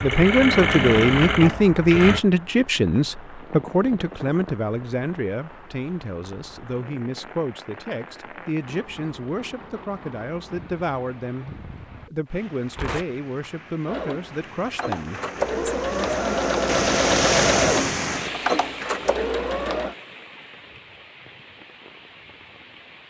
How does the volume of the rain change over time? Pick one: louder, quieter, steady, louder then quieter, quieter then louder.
louder then quieter.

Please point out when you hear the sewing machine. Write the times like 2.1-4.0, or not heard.
0.0-2.2, 13.8-19.9.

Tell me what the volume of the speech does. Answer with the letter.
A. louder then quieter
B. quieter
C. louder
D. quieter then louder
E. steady
B.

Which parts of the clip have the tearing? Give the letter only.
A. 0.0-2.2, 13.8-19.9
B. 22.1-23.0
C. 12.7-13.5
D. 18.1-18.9
C.